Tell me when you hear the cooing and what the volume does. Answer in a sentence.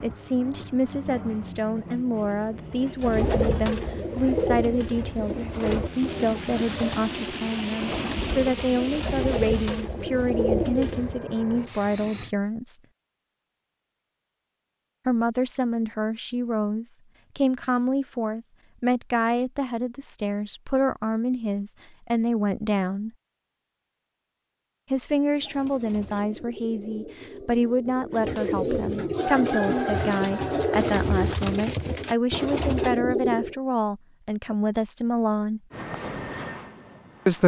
The cooing can be heard from 3.0 to 11.2 s, getting quieter then louder; and from 25.3 to 33.5 s, getting louder.